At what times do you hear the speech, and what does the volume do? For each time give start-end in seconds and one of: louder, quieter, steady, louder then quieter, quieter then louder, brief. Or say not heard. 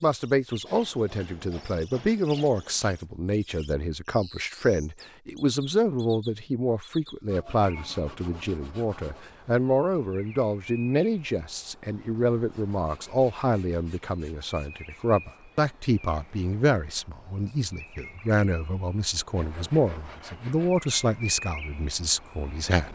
0.0-22.9 steady.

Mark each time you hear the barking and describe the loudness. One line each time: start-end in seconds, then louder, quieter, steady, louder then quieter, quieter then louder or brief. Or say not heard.
not heard.